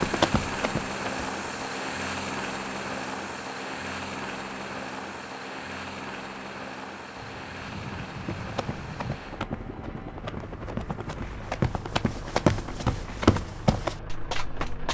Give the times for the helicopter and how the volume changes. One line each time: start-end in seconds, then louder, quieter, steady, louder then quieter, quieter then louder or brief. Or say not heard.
0.0-14.9 quieter.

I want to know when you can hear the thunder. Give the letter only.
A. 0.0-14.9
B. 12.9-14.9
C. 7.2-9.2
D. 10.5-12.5
C.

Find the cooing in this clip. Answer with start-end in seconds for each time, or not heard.
not heard.